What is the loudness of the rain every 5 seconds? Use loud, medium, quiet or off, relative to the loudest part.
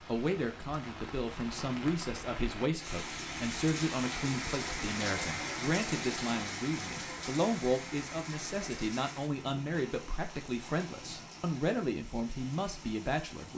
loud, loud, medium.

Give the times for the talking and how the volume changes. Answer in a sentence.
The talking can be heard from 0.1 to 13.5 s, at a steady volume.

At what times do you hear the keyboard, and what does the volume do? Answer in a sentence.
The keyboard can't be heard in this clip.